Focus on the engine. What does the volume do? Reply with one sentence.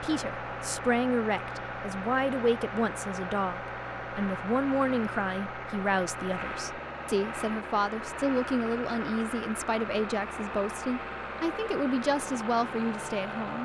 The loudness of the engine stays about the same.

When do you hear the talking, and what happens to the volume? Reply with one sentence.
The talking can be heard from 0.0 to 13.6 s, at a steady volume.